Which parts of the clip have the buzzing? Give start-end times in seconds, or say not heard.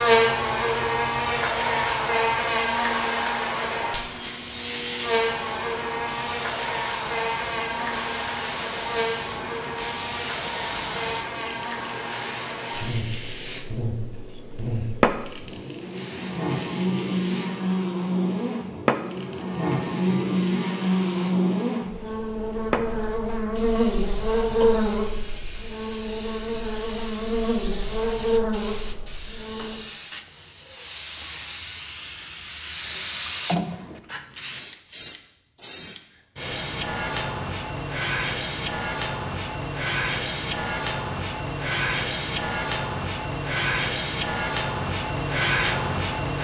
0.0-29.8.